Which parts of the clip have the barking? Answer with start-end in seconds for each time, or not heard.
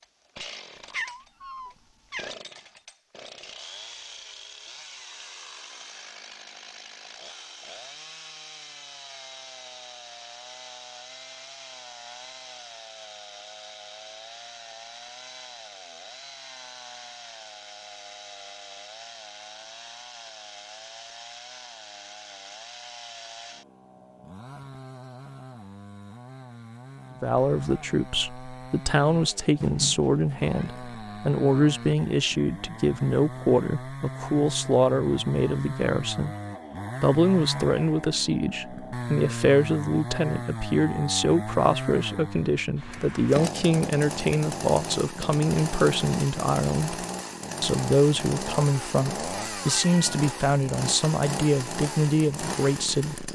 not heard.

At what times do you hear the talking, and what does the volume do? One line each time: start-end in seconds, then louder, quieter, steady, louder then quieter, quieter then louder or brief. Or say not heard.
27.2-36.4 steady
37.0-53.2 steady.